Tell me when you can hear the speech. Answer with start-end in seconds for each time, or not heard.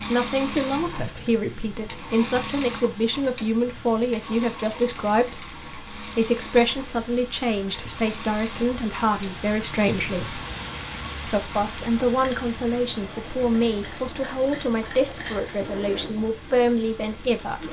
0.0-10.4, 11.2-17.6.